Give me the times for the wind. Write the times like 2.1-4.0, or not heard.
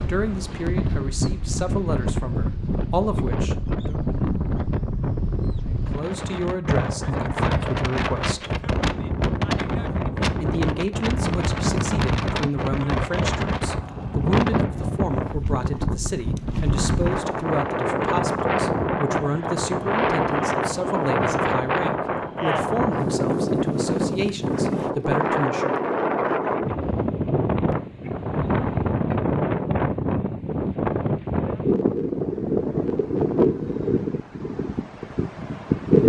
0.0-36.0.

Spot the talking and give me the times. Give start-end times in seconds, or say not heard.
0.0-4.0, 5.7-8.6, 10.4-25.8.